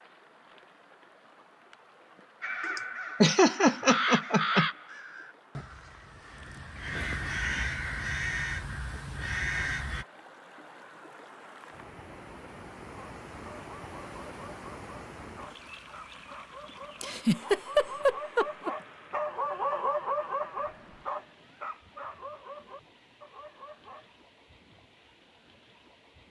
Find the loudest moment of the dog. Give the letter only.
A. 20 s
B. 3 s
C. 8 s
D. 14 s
A.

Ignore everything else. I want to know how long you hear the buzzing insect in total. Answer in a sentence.
You can't hear the buzzing insect here.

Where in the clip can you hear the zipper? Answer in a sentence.
You can't hear the zipper here.